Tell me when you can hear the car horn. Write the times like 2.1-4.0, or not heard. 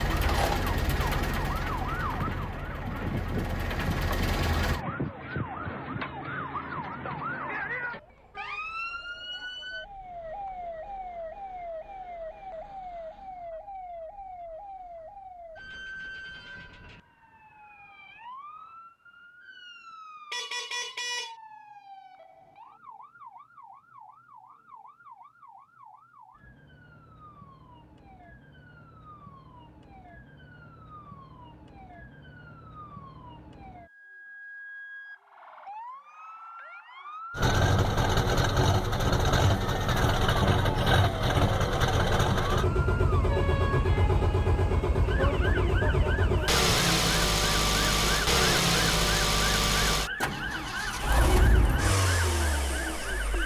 20.3-21.4.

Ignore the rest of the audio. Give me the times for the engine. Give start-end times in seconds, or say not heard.
0.0-4.8, 37.4-53.4.